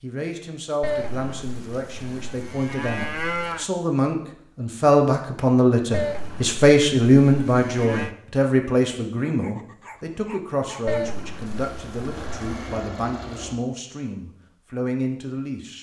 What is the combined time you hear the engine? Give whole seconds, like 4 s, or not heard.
2 s.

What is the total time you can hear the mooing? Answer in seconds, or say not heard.
7 s.